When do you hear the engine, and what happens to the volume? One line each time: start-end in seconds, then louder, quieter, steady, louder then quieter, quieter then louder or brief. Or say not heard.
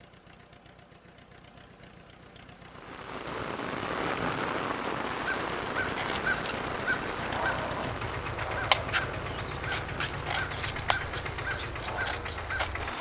0.0-12.9 louder.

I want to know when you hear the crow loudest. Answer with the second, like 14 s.
9 s.